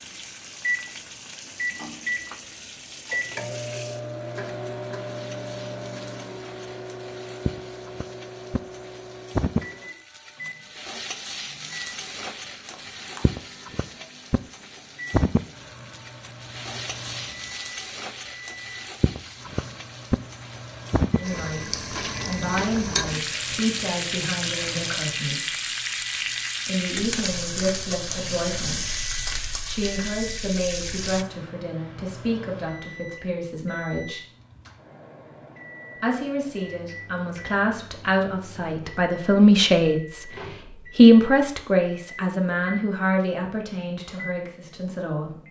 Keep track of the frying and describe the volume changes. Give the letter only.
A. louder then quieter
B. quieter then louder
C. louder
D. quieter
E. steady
C.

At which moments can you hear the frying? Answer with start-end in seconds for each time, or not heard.
0.0-31.2.